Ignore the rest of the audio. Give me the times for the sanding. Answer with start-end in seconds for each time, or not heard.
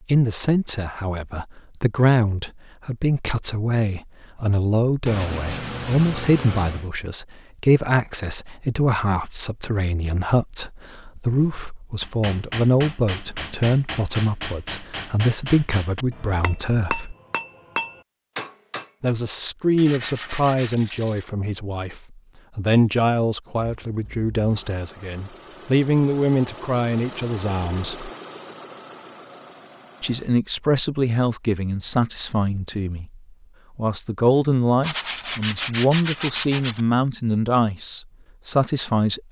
5.0-6.9, 19.8-21.3, 34.8-36.9.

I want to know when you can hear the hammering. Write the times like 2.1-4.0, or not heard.
11.4-19.1.